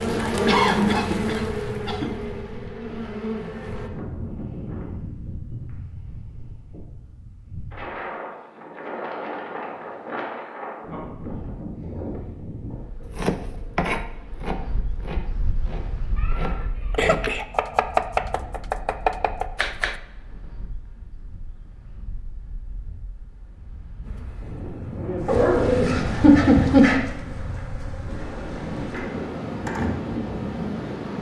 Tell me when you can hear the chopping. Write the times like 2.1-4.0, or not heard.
13.0-20.0.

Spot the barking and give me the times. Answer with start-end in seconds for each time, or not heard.
25.2-27.0.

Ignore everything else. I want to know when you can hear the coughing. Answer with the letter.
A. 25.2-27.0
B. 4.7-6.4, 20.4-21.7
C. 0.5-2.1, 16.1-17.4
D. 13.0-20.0
C.